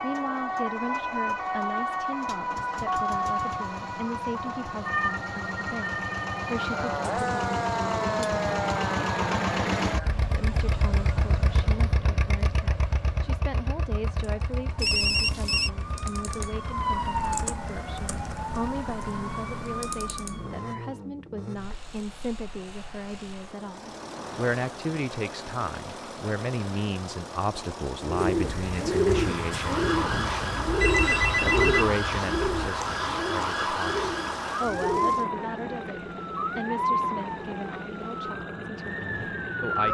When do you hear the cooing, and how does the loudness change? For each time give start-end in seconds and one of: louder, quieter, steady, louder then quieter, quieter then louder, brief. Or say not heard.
28.0-35.2 quieter.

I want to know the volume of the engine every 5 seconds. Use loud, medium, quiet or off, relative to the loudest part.
medium, loud, loud, quiet, medium, medium, medium, medium.